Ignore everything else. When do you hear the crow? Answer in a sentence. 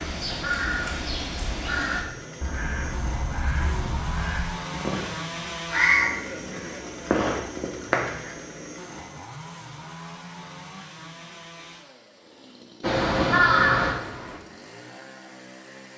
You can hear the crow from 0.0 to 8.3 s and from 12.8 to 14.4 s.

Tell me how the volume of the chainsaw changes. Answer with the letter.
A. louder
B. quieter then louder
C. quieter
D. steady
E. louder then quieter
C.